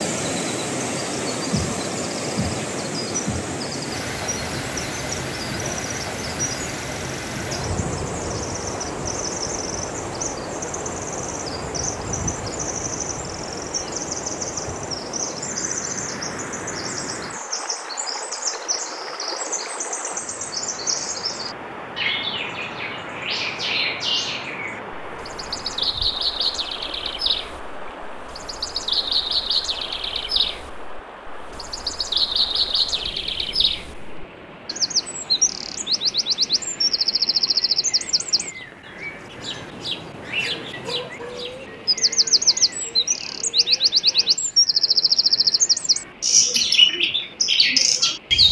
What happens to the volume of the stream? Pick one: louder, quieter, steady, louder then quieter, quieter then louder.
quieter.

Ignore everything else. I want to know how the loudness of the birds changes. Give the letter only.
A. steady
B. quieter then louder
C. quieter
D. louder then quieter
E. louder
E.